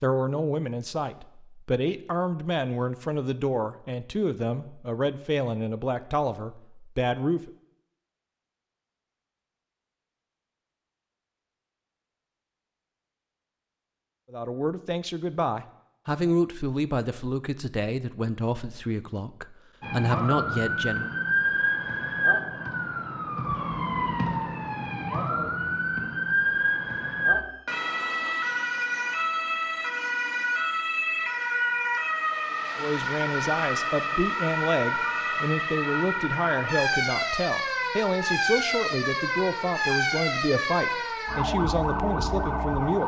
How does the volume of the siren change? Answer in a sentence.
The loudness of the siren stays about the same.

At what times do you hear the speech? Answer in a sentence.
The speech can be heard from 0.0 to 7.5 s, from 14.3 to 21.1 s and from 32.8 to 43.0 s.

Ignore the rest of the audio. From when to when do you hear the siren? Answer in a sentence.
You can hear the siren from 19.8 to 43.0 s.